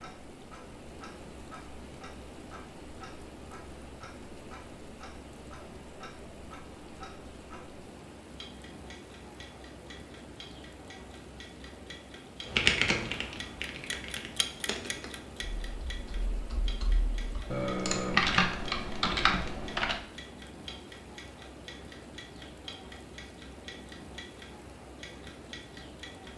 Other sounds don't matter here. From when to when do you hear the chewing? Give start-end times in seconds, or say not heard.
not heard.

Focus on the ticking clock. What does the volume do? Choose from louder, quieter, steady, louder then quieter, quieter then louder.
louder.